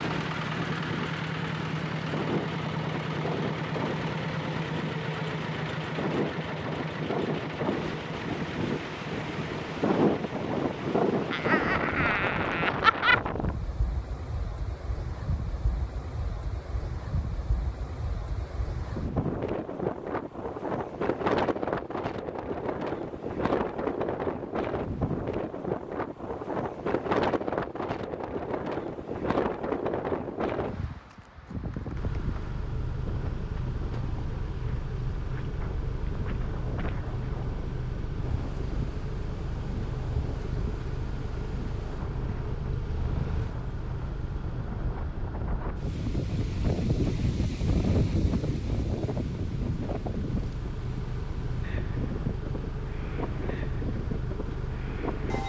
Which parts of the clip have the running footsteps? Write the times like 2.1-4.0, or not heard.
not heard.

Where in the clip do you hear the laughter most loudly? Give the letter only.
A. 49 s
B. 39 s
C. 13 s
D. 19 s
C.